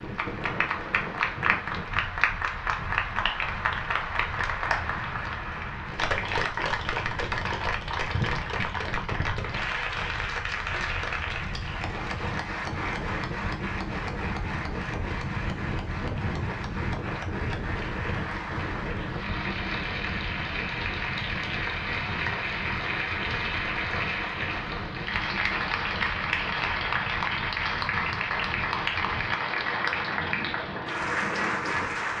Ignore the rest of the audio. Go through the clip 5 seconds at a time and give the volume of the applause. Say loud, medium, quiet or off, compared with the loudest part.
loud, loud, medium, medium, loud, loud, loud.